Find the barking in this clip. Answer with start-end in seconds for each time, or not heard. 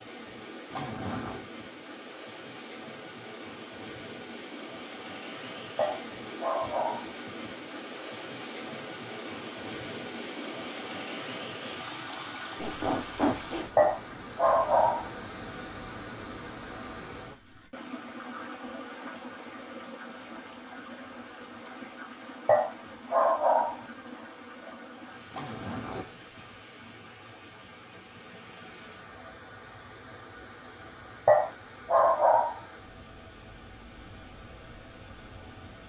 5.8-7.1, 13.8-15.1, 22.4-23.8, 31.2-32.6.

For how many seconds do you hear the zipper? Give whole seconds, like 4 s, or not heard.
3 s.